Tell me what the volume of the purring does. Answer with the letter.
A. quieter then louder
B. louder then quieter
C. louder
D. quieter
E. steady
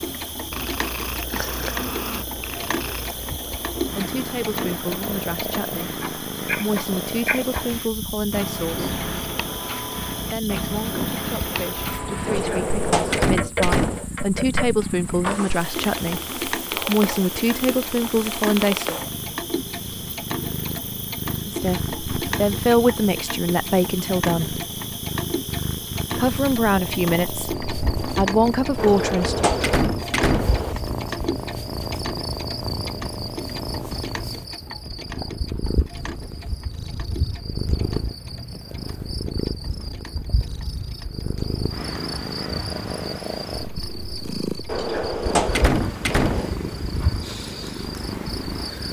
E.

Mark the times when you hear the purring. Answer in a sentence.
You can hear the purring from 0.0 to 48.8 s.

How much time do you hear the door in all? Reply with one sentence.
The door can be heard for 6 seconds in total.